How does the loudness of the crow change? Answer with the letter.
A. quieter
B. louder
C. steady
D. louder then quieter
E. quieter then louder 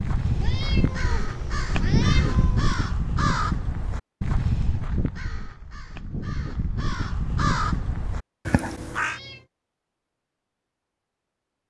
E.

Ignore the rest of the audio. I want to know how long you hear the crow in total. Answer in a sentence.
You can hear the crow for 9 seconds altogether.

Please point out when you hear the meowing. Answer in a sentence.
The meowing can be heard from 0.2 to 2.6 s and from 8.8 to 9.5 s.